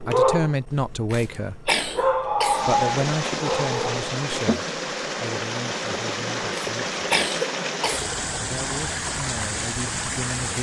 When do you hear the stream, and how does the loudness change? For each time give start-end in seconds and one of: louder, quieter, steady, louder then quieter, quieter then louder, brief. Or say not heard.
2.5-10.5 steady.